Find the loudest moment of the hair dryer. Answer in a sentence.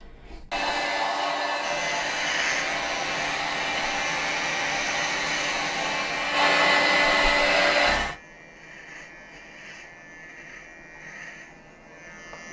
The volume of the hair dryer peaks at 7 seconds.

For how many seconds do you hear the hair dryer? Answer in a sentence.
The hair dryer can be heard for 8 seconds in total.